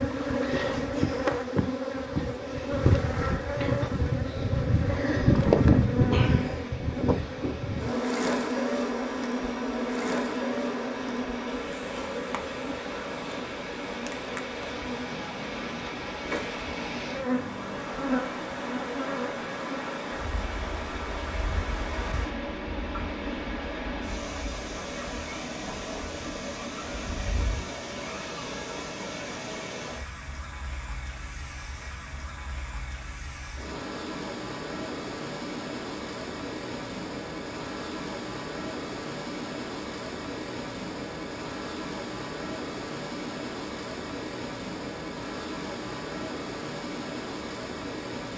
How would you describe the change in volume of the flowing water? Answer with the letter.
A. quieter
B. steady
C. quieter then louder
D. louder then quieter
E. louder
E.